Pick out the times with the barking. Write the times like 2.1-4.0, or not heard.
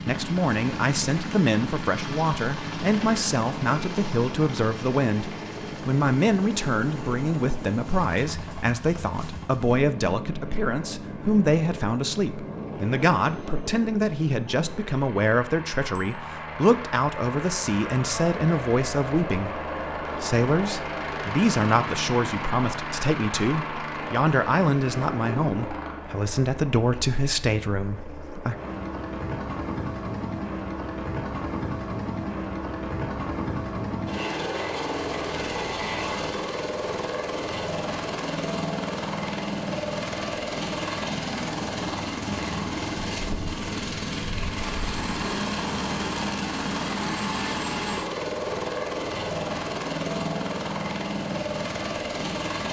not heard.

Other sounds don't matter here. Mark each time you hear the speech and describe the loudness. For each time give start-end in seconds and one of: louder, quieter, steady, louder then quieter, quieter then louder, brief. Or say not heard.
0.0-28.6 steady.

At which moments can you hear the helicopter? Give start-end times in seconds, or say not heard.
0.0-52.6.